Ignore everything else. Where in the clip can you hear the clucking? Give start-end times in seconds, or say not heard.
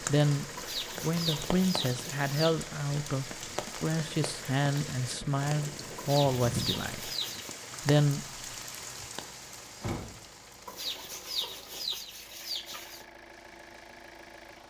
0.6-2.5, 6.0-7.5, 10.7-13.1.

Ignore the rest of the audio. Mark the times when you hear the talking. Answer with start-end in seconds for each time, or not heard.
0.0-7.1, 7.8-8.2.